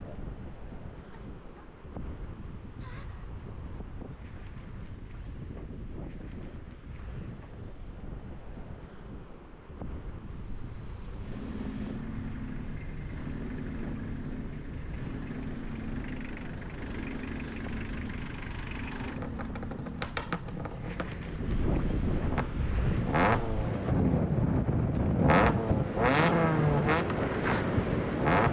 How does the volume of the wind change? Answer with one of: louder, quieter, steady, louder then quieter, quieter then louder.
louder.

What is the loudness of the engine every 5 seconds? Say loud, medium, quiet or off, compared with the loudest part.
off, off, quiet, quiet, medium, loud.